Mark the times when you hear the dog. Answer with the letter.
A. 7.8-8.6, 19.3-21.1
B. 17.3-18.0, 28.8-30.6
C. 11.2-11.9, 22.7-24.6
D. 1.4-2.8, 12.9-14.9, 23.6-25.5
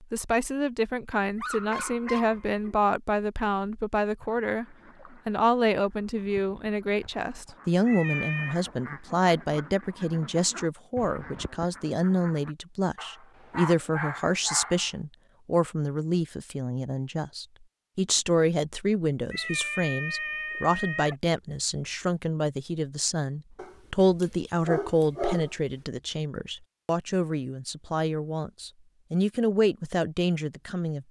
D.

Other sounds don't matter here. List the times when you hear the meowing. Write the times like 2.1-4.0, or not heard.
7.8-8.6, 19.3-21.1.